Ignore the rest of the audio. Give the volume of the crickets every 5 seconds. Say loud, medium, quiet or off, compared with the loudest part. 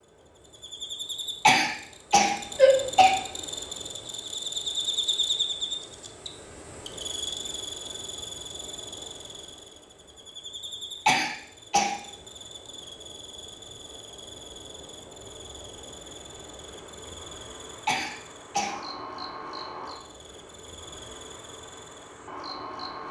loud, loud, medium, medium, medium.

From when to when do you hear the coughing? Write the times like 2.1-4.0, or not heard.
1.4-3.1, 11.1-11.9, 17.9-18.8.